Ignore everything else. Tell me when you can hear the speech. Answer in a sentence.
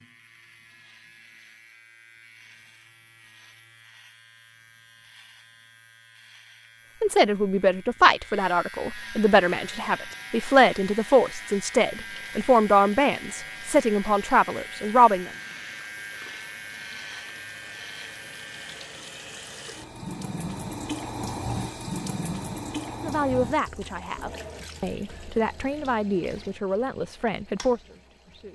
You can hear the speech from 7.0 to 15.3 s and from 23.0 to 28.5 s.